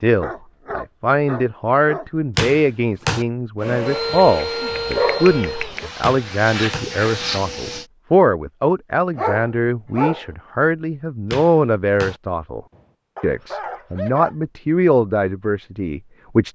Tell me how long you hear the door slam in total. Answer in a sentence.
The door slam can be heard for 3 seconds in total.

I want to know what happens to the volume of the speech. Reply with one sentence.
The volume of the speech stays about the same.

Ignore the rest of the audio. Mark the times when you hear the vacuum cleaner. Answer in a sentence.
You can hear the vacuum cleaner from 3.6 to 7.8 s.